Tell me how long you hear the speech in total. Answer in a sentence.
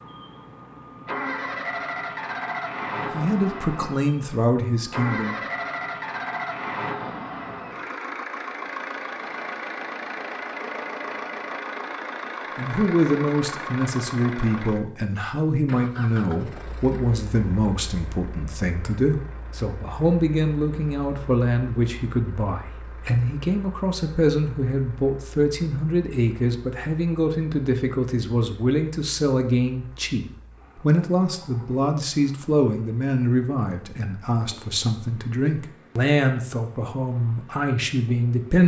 You can hear the speech for 28 seconds altogether.